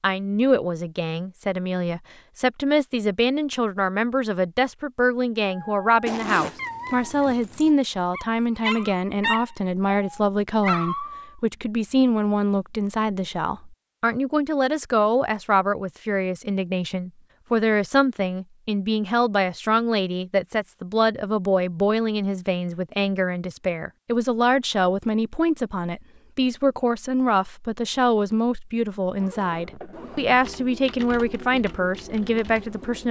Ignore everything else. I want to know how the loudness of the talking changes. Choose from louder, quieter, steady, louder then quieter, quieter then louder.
steady.